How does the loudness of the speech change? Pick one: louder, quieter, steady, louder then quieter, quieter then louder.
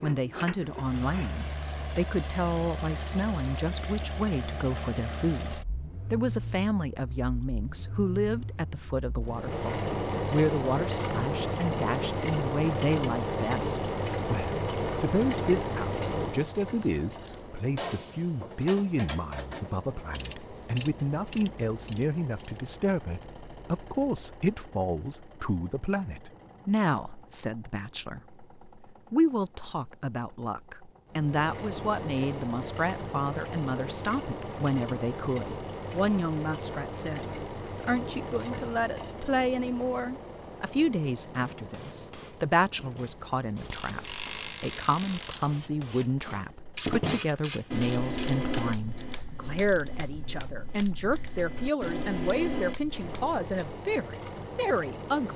steady.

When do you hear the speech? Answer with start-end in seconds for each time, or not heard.
0.0-55.3.